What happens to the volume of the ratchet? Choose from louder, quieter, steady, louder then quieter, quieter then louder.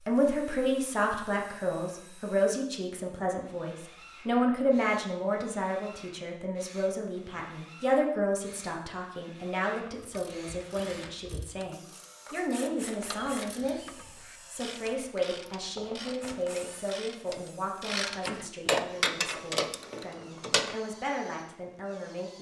louder.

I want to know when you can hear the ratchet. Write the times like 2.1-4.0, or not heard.
9.8-20.8.